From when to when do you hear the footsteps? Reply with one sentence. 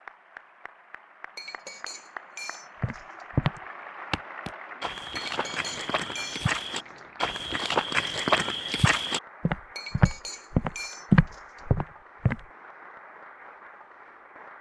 You can hear the footsteps from 2.8 to 12.4 s.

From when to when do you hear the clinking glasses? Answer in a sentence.
You can hear the clinking glasses from 1.4 to 3.2 s, from 5.2 to 7.0 s and from 9.8 to 11.6 s.